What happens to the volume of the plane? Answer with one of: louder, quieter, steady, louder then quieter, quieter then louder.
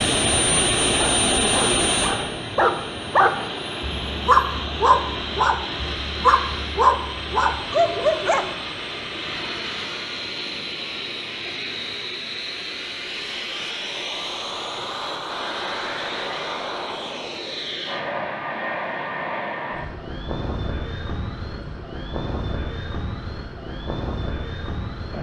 quieter.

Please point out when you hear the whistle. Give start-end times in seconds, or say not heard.
not heard.